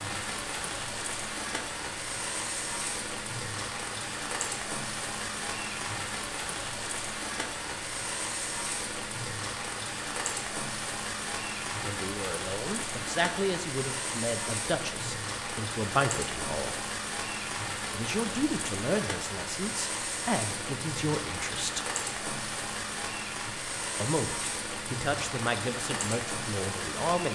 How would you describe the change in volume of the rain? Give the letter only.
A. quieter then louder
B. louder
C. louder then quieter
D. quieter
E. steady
E.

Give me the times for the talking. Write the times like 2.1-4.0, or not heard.
11.8-16.8, 17.9-21.9, 24.0-27.2.